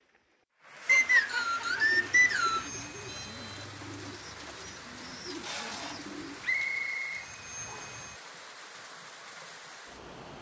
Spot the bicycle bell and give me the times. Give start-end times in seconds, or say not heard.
2.5-3.3, 7.1-8.2.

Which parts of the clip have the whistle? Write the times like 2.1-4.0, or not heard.
0.8-2.7, 6.4-8.0.